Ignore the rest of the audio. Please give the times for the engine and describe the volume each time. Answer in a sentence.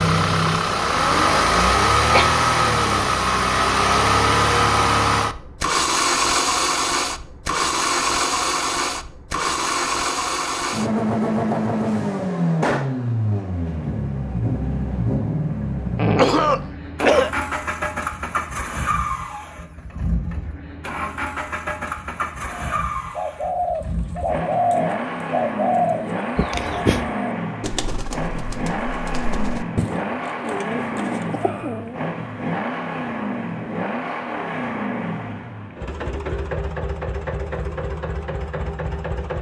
The engine can be heard from 0.0 to 39.3 s, getting quieter.